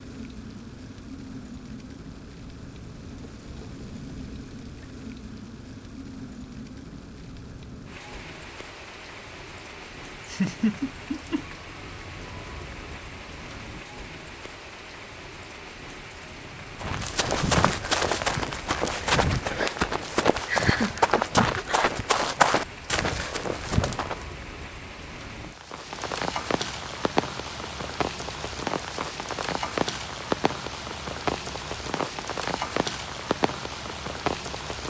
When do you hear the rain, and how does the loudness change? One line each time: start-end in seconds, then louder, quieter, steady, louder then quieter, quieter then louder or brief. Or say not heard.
0.0-34.8 louder.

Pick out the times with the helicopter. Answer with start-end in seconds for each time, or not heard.
not heard.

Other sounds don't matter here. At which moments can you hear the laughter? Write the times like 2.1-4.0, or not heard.
10.2-11.4, 20.4-21.9.